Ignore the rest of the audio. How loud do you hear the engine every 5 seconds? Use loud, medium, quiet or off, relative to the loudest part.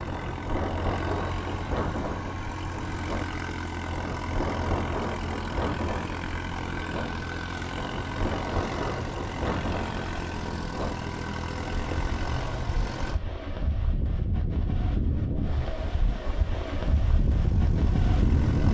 loud, loud, loud, medium.